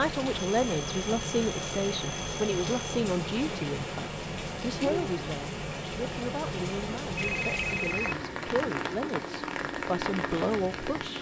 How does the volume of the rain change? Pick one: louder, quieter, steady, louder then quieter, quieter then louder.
steady.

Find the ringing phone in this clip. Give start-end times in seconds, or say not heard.
0.3-3.0, 7.2-8.2.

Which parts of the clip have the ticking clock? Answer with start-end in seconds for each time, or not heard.
not heard.